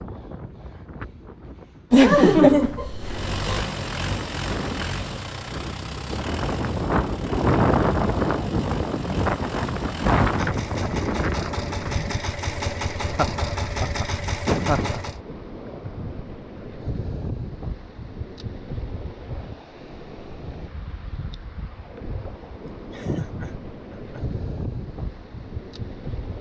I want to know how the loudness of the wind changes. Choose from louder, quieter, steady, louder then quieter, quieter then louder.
louder then quieter.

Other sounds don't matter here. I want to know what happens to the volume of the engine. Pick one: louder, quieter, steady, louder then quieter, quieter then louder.
quieter then louder.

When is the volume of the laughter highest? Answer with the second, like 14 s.
2 s.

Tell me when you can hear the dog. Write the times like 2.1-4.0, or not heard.
not heard.